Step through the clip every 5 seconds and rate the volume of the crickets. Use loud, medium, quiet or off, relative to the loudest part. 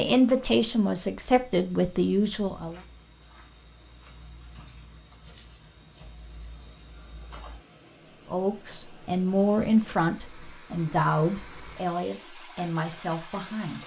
loud, loud, off.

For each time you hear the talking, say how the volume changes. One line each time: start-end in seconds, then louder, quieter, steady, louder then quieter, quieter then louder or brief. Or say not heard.
0.0-2.8 brief
8.3-13.8 quieter.